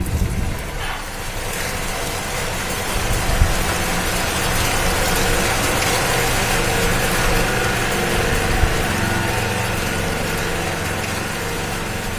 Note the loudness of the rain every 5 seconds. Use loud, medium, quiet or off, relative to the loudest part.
loud, loud, medium.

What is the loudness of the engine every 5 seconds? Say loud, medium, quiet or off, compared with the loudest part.
medium, loud, loud.